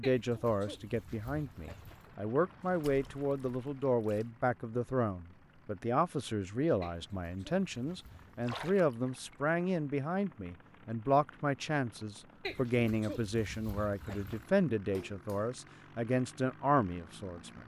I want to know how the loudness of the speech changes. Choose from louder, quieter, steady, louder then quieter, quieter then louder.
steady.